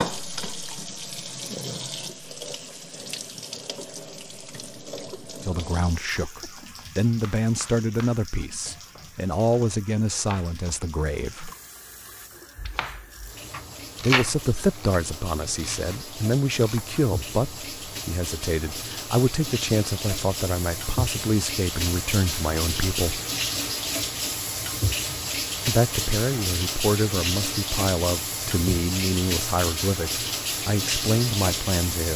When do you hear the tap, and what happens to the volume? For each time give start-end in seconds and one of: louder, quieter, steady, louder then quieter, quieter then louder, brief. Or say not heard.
0.0-32.1 quieter then louder.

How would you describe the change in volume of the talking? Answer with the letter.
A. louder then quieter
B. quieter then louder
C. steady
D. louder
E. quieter
C.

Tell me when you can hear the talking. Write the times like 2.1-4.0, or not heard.
5.4-11.5, 14.0-23.2, 25.6-32.1.